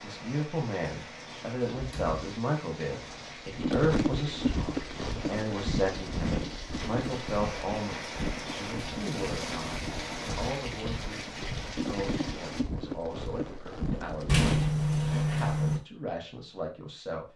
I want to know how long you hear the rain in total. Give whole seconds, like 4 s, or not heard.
13 s.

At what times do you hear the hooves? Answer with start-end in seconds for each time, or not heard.
3.5-14.8.